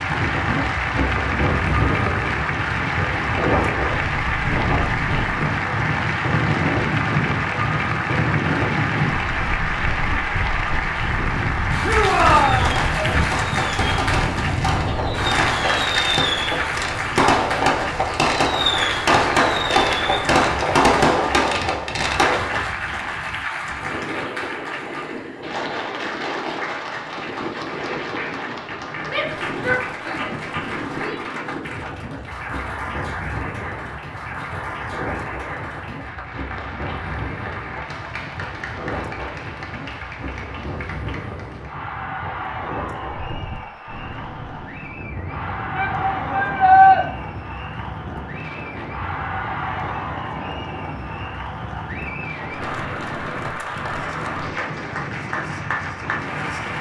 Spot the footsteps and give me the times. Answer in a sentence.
The footsteps can't be heard in this clip.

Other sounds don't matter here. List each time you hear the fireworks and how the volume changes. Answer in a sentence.
The fireworks can be heard from 12.1 to 22.6 s, getting louder.